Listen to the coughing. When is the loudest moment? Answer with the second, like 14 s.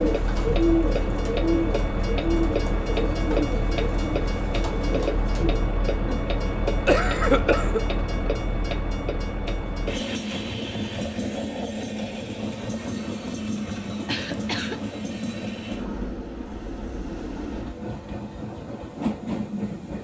7 s.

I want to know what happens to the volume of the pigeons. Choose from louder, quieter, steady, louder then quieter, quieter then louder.
quieter.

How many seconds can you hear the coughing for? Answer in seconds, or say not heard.
2 s.